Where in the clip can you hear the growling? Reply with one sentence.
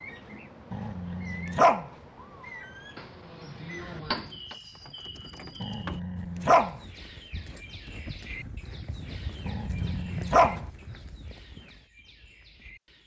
The growling can be heard from 0.7 to 1.9 s, from 5.6 to 6.8 s and from 9.4 to 10.7 s.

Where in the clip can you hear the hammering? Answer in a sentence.
The hammering can be heard from 3.0 to 4.5 s.